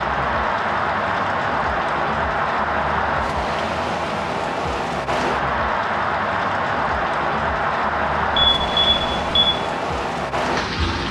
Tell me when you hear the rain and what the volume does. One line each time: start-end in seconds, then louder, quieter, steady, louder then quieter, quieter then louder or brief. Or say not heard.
0.0-11.0 steady.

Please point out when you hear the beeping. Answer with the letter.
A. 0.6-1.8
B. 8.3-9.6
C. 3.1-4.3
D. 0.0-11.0
B.